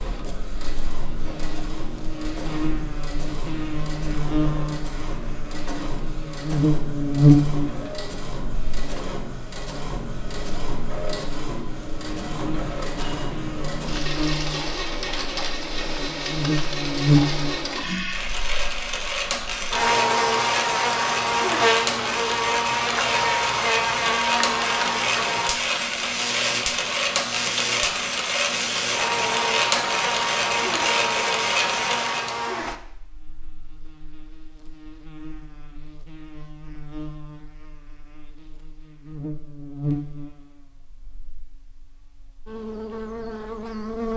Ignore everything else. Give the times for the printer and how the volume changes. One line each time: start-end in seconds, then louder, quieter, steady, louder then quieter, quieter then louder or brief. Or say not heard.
0.0-32.4 louder.